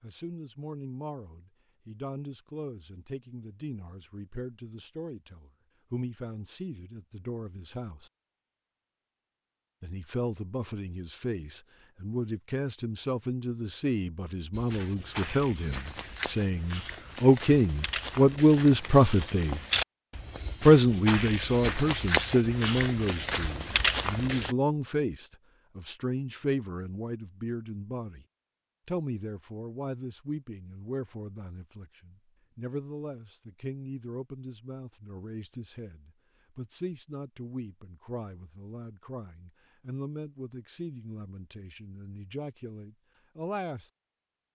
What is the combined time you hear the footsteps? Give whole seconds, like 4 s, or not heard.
10 s.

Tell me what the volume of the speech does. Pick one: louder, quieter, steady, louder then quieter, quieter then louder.
louder then quieter.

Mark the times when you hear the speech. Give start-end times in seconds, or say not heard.
0.0-8.1, 9.8-19.6, 20.6-28.2, 28.9-43.9.